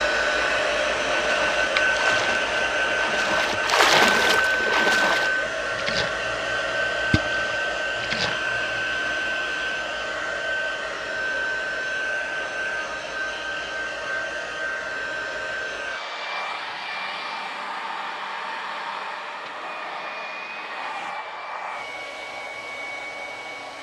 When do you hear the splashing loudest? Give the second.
4 s.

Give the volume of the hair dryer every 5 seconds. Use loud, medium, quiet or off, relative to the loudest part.
loud, loud, medium, medium, medium.